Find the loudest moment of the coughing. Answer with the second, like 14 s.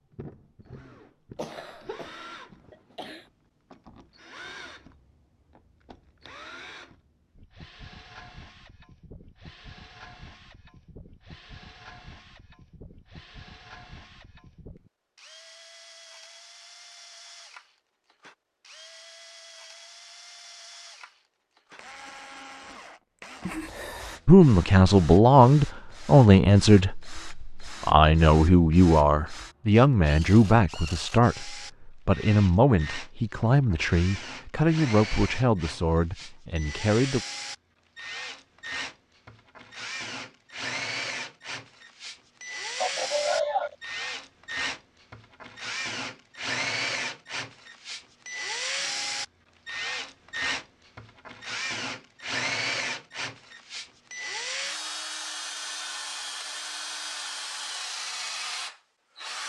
43 s.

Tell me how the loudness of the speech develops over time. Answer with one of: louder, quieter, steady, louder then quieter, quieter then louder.
quieter.